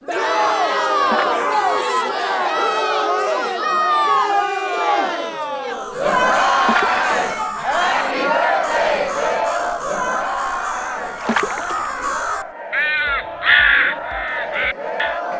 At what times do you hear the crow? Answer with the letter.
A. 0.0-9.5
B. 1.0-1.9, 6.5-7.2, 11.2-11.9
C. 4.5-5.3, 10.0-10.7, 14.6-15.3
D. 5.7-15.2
D.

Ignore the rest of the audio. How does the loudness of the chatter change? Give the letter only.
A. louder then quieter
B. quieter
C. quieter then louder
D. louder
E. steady
B.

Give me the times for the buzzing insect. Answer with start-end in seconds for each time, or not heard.
not heard.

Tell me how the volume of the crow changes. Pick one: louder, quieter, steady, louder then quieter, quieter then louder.
louder.